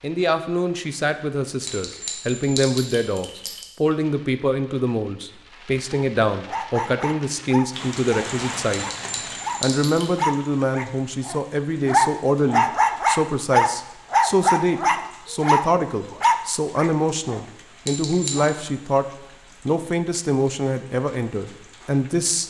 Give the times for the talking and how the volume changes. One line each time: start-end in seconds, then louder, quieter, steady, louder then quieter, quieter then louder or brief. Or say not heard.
0.0-19.1 steady
19.6-22.4 brief.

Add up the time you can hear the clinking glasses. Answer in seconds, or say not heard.
4 s.